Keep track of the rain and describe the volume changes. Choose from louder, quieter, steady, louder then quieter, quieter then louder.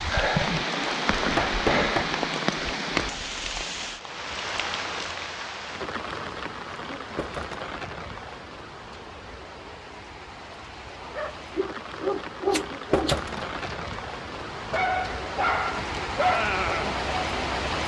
quieter then louder.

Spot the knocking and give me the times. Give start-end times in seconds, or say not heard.
1.4-2.1, 7.2-7.6, 12.9-13.3.